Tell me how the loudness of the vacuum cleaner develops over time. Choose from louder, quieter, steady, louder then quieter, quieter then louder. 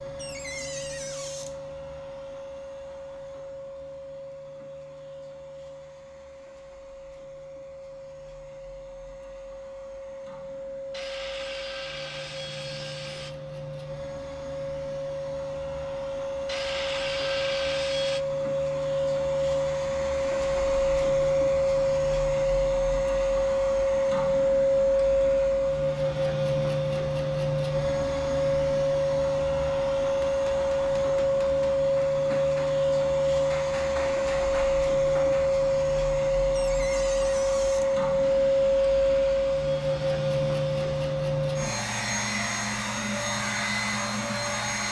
louder.